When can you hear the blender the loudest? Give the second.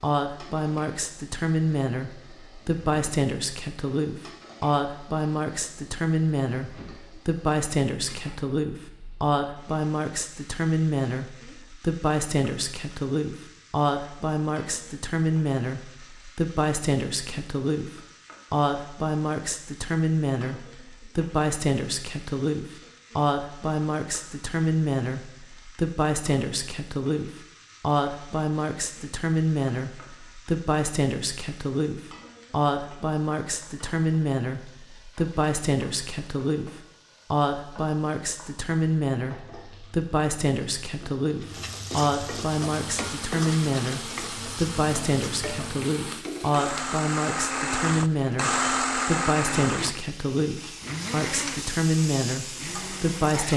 49 s.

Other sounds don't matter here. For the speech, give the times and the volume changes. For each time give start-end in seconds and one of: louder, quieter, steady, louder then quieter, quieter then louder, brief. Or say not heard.
0.0-53.5 steady.